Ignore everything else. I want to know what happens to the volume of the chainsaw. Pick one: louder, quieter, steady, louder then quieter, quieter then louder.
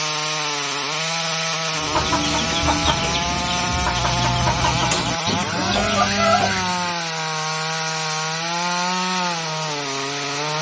steady.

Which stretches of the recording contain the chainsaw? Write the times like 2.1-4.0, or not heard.
0.0-10.5.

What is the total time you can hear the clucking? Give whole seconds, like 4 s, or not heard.
5 s.